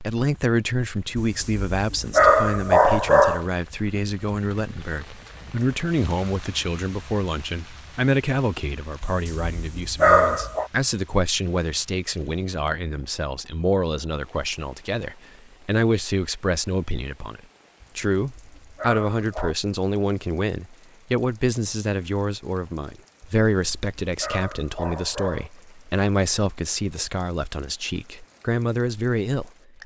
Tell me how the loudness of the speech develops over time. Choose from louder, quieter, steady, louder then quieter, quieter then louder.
steady.